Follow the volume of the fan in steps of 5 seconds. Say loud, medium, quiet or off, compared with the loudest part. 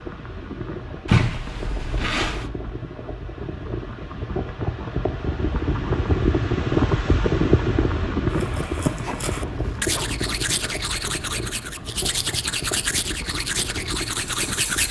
medium, loud, medium.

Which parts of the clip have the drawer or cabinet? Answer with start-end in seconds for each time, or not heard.
not heard.